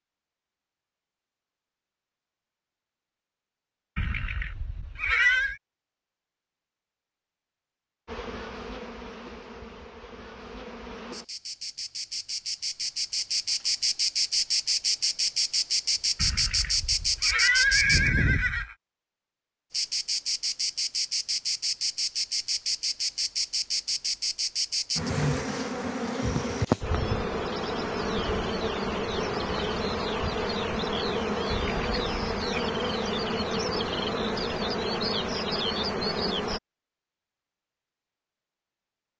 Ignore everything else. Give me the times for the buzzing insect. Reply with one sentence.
The buzzing insect can be heard from 8.1 to 18.1 s and from 19.7 to 36.6 s.